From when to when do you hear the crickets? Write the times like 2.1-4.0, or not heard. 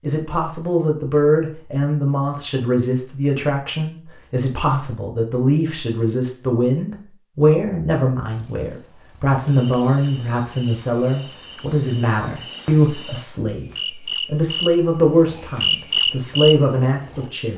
8.3-17.5.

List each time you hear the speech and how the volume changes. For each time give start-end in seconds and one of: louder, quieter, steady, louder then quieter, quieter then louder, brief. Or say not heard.
0.0-17.5 steady.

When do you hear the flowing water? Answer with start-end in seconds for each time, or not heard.
not heard.